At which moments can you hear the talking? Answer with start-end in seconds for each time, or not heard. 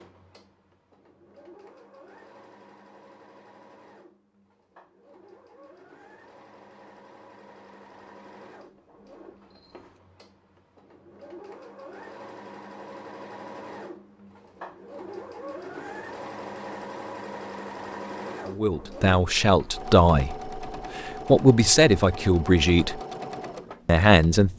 18.4-23.0, 23.9-24.5.